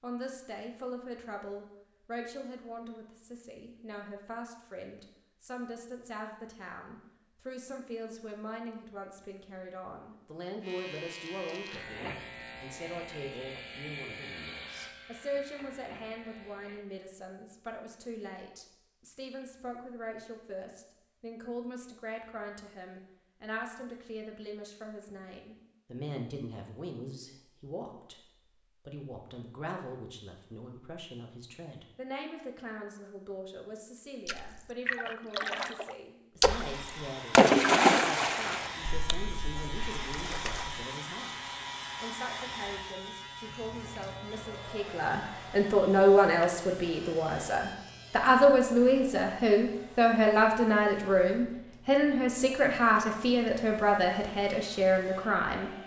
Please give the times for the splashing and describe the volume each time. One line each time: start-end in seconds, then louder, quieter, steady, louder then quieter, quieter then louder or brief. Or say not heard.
34.2-40.9 louder then quieter.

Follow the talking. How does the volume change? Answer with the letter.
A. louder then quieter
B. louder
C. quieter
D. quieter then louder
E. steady
B.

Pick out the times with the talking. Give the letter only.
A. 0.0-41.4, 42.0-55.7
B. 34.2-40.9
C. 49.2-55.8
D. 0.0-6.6
A.